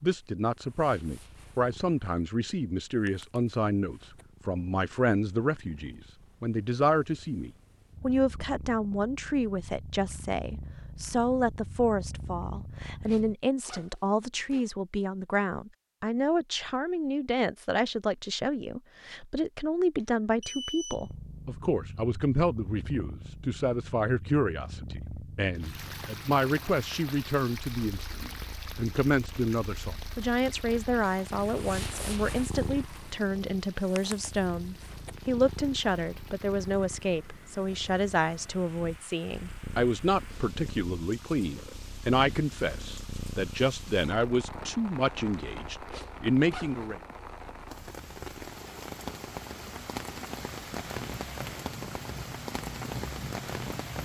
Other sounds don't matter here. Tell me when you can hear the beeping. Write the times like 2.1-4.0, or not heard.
20.0-21.1.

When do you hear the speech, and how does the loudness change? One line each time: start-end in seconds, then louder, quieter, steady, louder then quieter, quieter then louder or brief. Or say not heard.
0.0-47.0 steady.